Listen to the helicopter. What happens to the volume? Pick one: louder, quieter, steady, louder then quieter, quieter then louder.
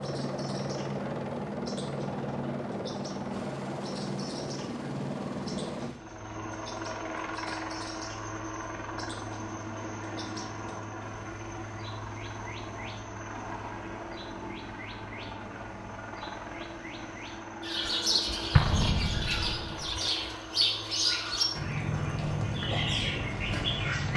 quieter.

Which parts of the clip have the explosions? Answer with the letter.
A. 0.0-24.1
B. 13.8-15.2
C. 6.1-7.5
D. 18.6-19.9
D.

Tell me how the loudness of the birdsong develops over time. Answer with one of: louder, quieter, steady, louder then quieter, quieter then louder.
louder.